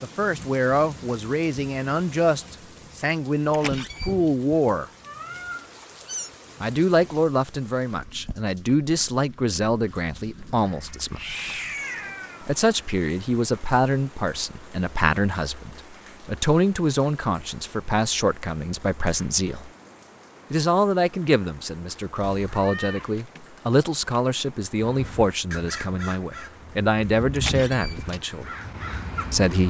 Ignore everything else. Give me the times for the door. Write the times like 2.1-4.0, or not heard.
3.5-4.2, 27.4-28.2.